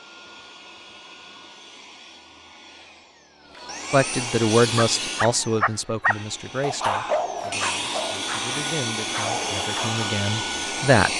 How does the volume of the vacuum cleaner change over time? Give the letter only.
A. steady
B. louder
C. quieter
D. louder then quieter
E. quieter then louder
B.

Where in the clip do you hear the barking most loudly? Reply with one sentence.
The loudest moment of the barking is at 7 seconds.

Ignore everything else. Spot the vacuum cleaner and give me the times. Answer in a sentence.
You can hear the vacuum cleaner from 0.0 to 11.1 s.